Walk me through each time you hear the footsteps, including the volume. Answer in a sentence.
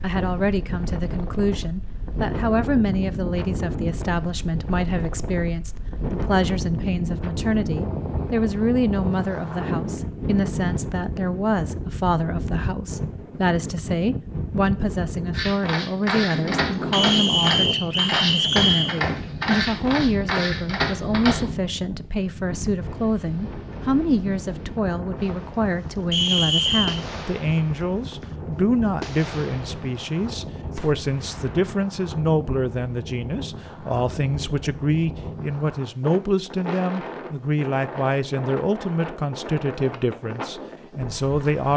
You can hear the footsteps from 15.3 to 21.4 s, at a steady volume.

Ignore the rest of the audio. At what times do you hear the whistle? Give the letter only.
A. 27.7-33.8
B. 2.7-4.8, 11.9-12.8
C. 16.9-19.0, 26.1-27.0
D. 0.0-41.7
C.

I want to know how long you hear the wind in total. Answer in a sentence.
The wind can be heard for 42 seconds in total.